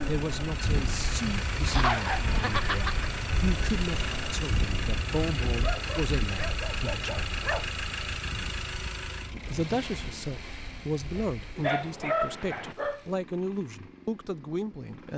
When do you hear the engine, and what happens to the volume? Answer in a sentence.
The engine can be heard from 0.0 to 15.1 s, getting quieter.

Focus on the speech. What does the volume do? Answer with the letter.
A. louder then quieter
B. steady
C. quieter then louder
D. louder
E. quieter
B.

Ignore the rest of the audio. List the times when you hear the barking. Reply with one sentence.
You can hear the barking from 1.6 to 3.1 s, from 5.5 to 7.7 s and from 11.2 to 13.1 s.